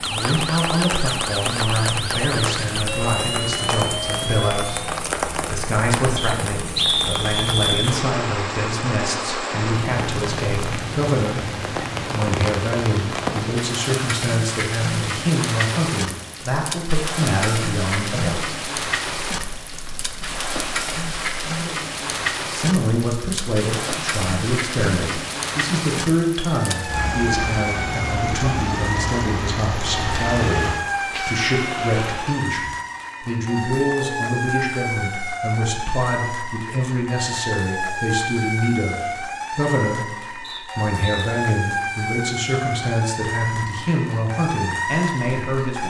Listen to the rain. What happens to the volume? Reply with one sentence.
The volume of the rain stays about the same.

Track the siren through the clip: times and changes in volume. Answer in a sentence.
The siren can be heard from 0.0 to 4.9 s, at a steady volume; and from 26.6 to 45.8 s, at a steady volume.